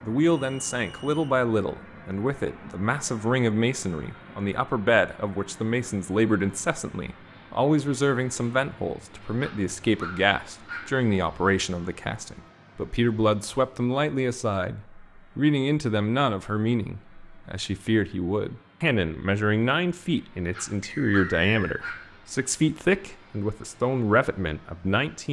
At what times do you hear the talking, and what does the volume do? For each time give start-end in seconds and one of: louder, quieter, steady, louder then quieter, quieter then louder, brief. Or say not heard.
0.0-25.2 steady.